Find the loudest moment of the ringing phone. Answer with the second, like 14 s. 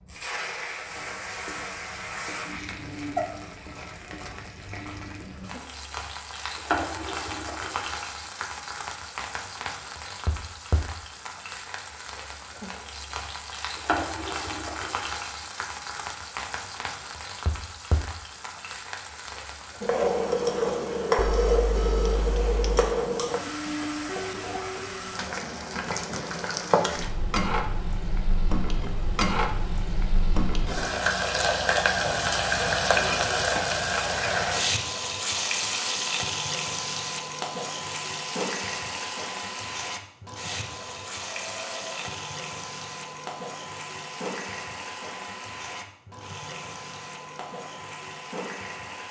22 s.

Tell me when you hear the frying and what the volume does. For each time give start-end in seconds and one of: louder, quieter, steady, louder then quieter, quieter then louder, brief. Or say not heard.
0.1-49.0 louder then quieter.